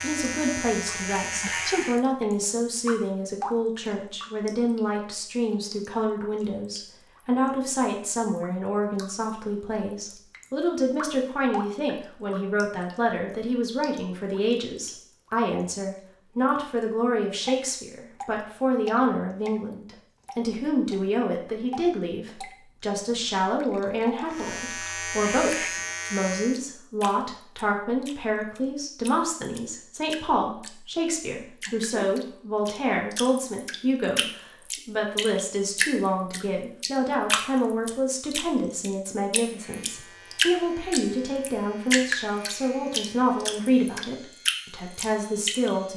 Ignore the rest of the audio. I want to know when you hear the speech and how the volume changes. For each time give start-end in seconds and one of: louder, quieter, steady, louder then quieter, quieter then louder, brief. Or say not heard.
0.0-45.9 steady.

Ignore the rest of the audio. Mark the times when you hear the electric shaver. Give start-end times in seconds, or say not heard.
0.0-2.0, 24.3-26.6, 39.5-45.9.